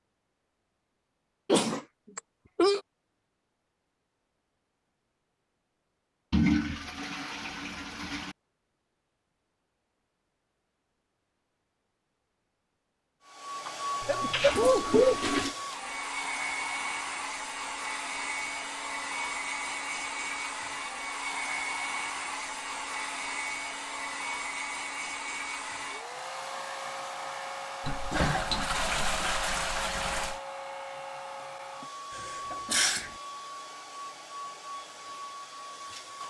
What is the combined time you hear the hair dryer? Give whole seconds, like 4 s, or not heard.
23 s.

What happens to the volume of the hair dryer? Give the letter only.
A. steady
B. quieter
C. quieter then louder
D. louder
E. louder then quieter
B.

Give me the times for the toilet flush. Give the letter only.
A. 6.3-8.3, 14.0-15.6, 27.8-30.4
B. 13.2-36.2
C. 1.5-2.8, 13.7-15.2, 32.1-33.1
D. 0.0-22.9
A.